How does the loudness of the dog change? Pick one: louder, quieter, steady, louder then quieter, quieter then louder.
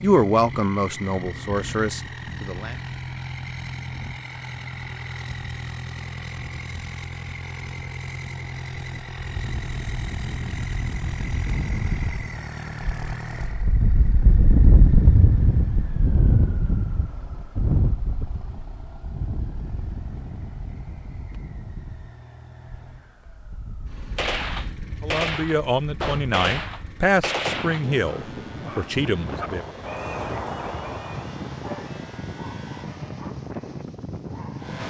quieter.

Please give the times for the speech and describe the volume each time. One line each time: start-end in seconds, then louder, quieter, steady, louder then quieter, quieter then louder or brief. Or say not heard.
0.0-2.8 brief
25.0-29.6 steady.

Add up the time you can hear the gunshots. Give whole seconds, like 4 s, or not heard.
4 s.